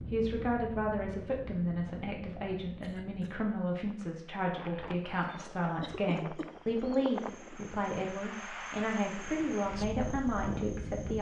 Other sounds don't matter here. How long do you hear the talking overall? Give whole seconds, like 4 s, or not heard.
11 s.